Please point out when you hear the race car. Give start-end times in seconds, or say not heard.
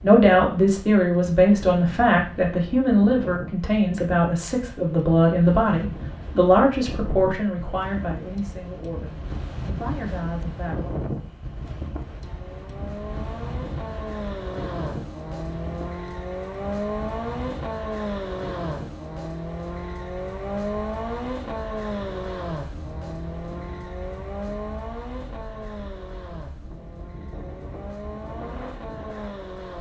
12.2-29.7.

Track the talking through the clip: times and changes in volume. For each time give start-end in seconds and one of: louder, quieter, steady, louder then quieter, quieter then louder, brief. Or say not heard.
0.0-11.0 quieter.